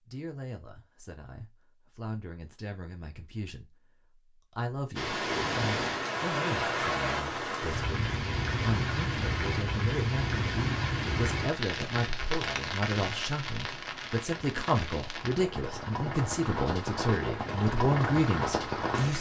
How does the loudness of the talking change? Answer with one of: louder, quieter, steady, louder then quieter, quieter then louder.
louder.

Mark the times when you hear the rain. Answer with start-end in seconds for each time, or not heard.
5.0-19.1.